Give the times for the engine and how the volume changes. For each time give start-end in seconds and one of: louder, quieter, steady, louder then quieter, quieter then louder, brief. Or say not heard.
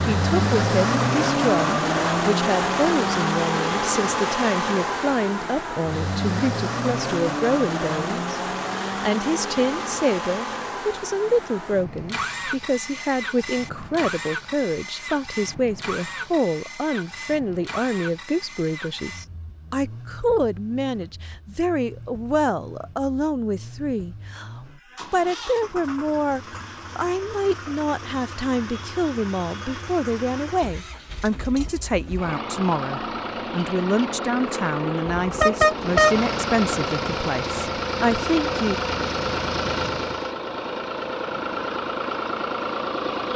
0.0-43.3 quieter then louder.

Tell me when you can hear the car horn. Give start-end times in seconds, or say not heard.
35.0-36.1.